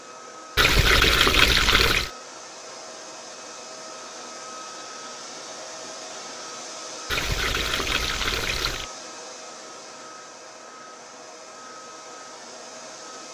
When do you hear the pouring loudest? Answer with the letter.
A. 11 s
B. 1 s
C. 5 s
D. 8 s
B.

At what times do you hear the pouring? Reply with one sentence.
The pouring can be heard from 0.6 to 2.1 s and from 7.1 to 8.8 s.